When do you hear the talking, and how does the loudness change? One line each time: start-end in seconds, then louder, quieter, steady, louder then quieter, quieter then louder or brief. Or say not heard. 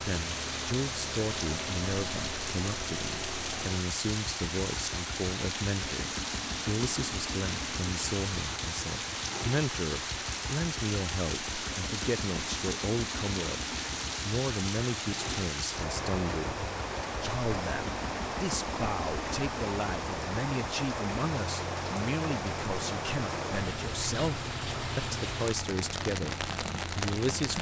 0.0-27.5 steady.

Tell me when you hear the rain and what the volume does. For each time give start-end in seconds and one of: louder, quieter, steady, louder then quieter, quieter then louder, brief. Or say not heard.
0.0-27.5 steady.